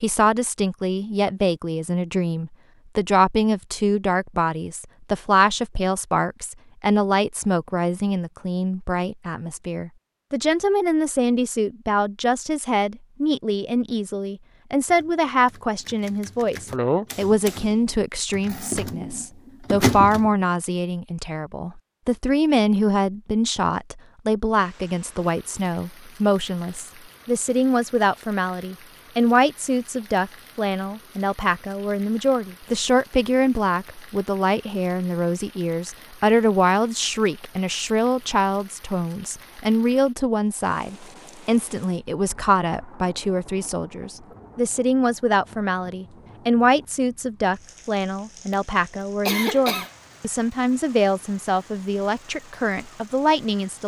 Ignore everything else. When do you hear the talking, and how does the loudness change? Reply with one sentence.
The talking can be heard from 0.0 to 53.8 s, at a steady volume.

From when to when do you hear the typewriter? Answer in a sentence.
The typewriter can be heard from 14.8 to 20.3 s.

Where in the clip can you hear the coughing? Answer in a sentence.
You can hear the coughing from 16.7 to 17.5 s and from 48.5 to 49.9 s.